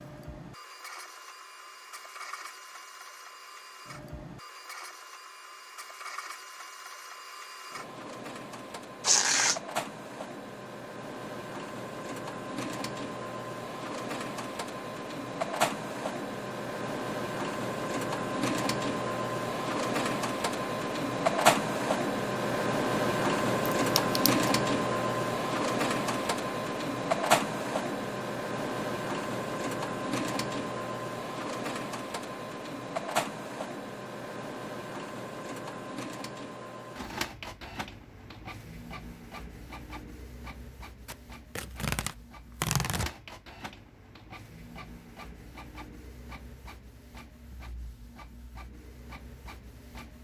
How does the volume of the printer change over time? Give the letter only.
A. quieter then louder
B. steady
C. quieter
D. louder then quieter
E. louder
D.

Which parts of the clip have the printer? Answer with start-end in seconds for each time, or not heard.
0.0-50.1.